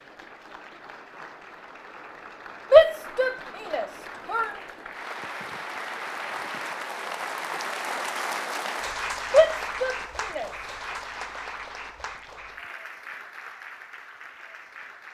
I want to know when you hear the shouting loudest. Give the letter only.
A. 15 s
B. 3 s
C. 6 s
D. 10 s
B.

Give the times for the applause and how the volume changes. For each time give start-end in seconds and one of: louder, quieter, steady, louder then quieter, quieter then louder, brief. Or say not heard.
0.0-15.0 louder then quieter.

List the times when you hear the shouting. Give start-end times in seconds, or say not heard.
2.7-4.5, 9.3-10.5.